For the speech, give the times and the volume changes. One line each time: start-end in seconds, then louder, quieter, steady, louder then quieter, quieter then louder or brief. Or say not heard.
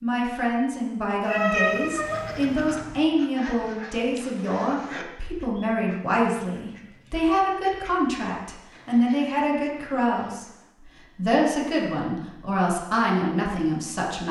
0.0-14.2 steady.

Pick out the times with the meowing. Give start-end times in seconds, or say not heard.
1.2-2.6.